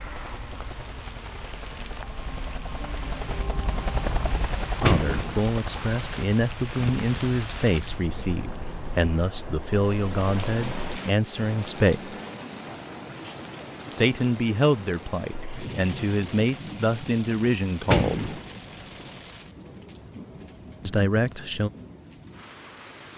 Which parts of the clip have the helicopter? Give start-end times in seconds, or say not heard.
0.0-9.1.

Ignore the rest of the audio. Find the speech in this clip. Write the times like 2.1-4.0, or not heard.
4.8-12.2, 13.9-18.3, 20.9-21.7.